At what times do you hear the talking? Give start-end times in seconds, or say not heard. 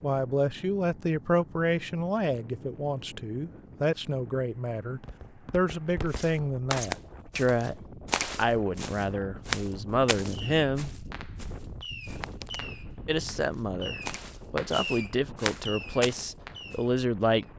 0.0-7.8, 8.3-10.9, 13.1-17.5.